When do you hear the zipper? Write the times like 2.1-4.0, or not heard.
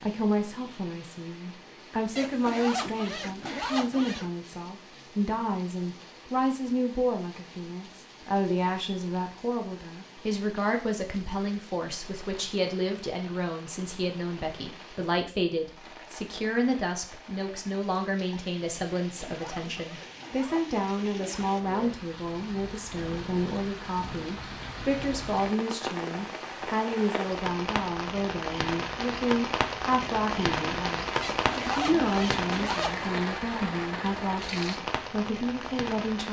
2.1-4.3, 19.1-21.6, 31.2-33.0.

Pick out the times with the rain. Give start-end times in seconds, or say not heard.
0.0-36.2.